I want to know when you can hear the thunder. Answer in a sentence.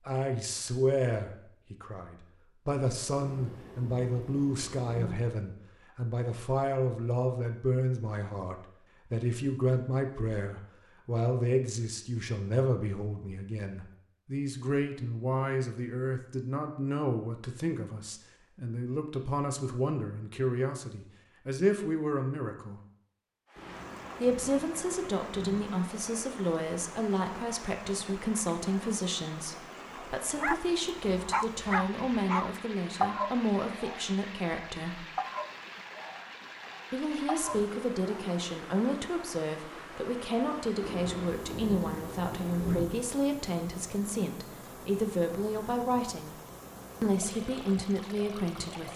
You can hear the thunder from 3.1 to 5.2 s, from 23.6 to 25.6 s and from 40.8 to 42.9 s.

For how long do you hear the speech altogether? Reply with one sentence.
You can hear the speech for 45 seconds altogether.